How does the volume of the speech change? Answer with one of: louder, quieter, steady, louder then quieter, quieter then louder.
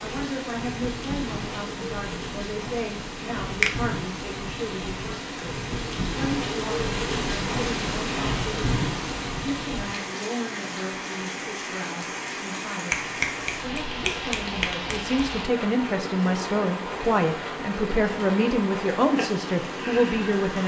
louder.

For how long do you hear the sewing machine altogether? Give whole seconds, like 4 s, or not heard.
not heard.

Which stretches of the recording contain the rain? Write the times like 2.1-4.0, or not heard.
0.0-20.6.